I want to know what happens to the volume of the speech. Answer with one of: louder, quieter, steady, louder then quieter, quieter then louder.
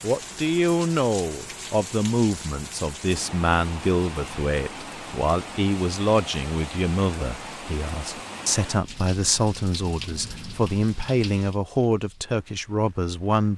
steady.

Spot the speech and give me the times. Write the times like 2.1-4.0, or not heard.
0.0-13.5.